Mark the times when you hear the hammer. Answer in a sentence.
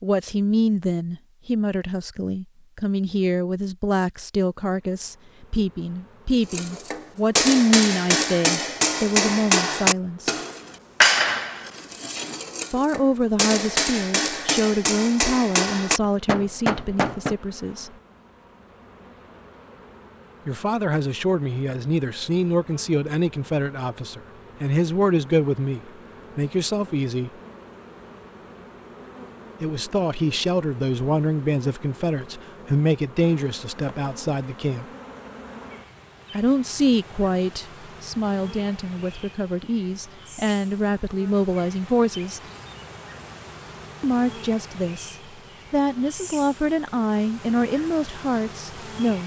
You can hear the hammer from 6.5 to 17.4 s.